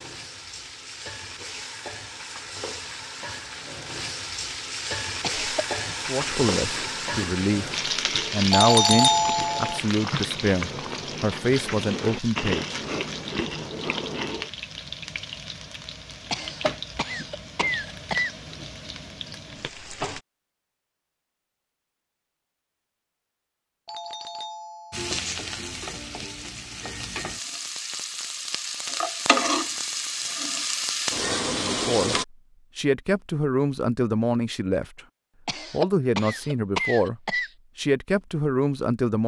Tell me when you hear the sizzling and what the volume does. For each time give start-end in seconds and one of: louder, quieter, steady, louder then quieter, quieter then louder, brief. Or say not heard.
0.0-20.2 louder then quieter
24.9-32.2 louder.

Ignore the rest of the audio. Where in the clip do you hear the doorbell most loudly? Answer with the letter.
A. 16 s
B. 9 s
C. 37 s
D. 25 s
B.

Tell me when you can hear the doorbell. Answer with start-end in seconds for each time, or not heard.
8.5-9.8, 23.9-25.1.